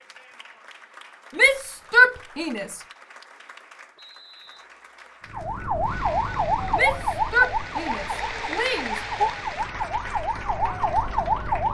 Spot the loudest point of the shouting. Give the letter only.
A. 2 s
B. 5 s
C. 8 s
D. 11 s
A.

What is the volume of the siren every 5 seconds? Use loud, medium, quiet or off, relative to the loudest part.
off, loud, loud.